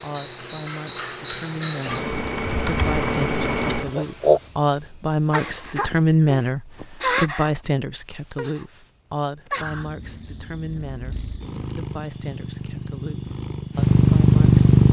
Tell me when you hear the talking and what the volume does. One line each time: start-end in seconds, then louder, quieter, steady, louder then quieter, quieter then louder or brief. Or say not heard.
0.0-14.7 louder then quieter.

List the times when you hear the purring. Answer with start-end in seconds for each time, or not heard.
9.9-14.8.